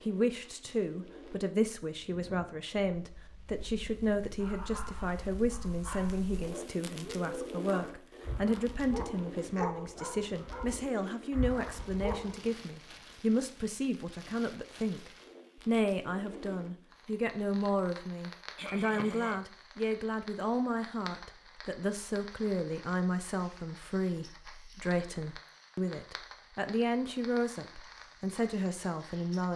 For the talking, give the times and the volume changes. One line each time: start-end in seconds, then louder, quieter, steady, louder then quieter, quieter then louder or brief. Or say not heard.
0.1-29.5 steady.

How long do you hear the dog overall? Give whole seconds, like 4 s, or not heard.
8 s.